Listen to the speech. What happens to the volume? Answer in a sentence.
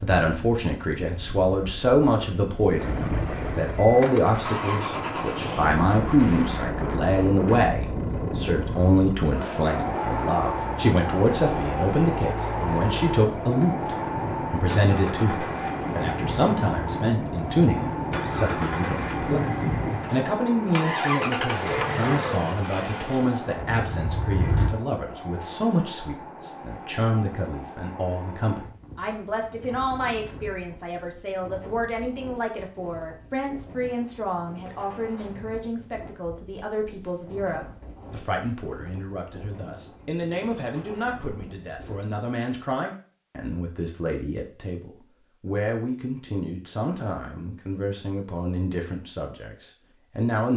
The volume of the speech goes down.